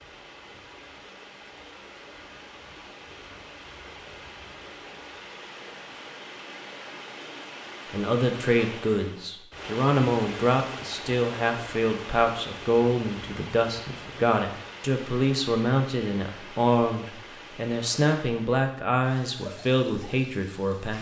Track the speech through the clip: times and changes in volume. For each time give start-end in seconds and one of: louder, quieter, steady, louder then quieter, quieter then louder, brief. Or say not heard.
7.9-20.9 steady.